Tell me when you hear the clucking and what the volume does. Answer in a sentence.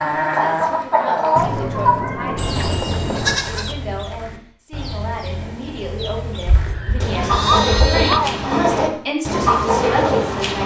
You can hear the clucking from 0.0 to 10.6 s, getting quieter then louder.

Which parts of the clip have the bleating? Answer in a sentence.
The bleating can be heard from 2.4 to 3.8 s and from 6.5 to 8.2 s.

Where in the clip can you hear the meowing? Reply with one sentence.
The meowing can be heard from 1.4 to 3.4 s and from 7.4 to 8.5 s.